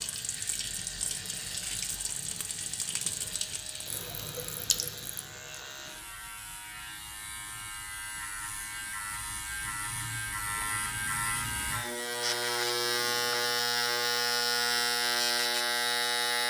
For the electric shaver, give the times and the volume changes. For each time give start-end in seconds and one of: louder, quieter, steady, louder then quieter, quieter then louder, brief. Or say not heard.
0.0-16.4 louder.